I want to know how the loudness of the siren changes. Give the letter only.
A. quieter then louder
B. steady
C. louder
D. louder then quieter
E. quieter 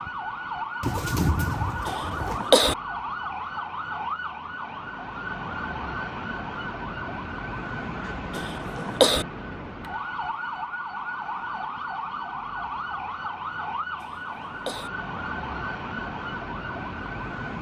B.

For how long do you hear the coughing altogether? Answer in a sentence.
You can hear the coughing for 3 seconds altogether.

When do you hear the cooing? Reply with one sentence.
The cooing can be heard from 0.8 to 2.4 s.